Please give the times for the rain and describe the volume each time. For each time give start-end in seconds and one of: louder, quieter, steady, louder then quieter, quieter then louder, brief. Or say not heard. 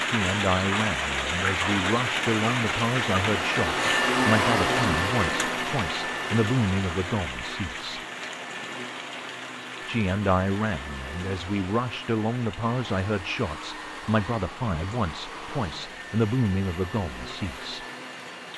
0.0-18.5 quieter.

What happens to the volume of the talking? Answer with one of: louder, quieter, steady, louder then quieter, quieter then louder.
steady.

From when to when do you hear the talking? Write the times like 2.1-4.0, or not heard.
0.0-8.0, 9.8-17.9.